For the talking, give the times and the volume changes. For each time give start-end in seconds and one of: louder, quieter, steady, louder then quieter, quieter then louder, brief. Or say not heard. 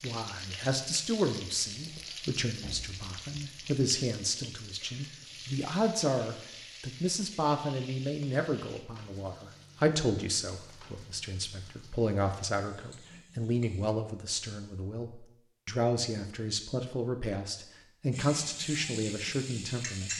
0.0-20.1 steady.